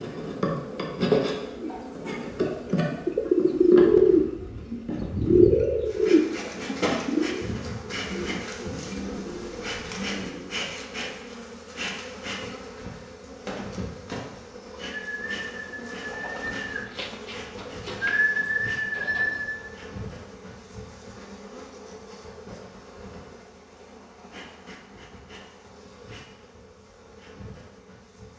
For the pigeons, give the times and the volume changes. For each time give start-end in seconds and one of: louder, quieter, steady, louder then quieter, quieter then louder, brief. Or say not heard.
1.6-10.7 louder then quieter
14.3-19.7 louder.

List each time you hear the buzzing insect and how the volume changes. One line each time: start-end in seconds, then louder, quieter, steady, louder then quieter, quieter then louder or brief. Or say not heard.
0.0-28.3 quieter.